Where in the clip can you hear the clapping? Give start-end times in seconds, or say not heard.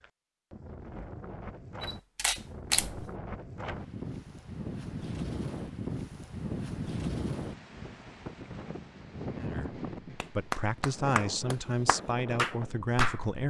10.2-13.3.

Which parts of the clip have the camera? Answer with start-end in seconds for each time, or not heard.
1.8-3.1.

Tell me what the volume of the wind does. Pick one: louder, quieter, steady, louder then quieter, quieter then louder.
louder then quieter.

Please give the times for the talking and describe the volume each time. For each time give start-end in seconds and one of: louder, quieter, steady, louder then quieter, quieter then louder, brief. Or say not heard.
9.3-13.4 louder.